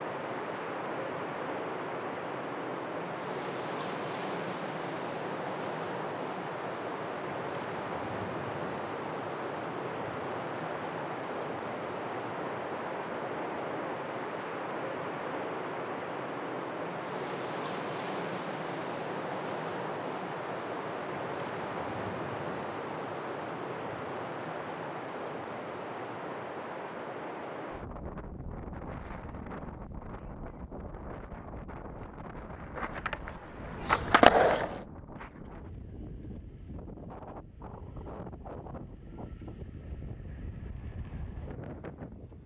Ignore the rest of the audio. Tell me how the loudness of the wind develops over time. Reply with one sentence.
The volume of the wind goes down.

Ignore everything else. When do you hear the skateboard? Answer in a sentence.
You can hear the skateboard from 32.6 to 34.8 s.